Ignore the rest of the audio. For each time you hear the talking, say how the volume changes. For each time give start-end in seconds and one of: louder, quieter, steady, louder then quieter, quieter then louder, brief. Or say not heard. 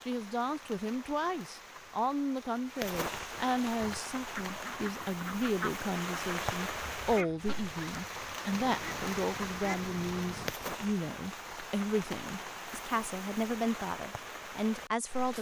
0.1-15.3 steady.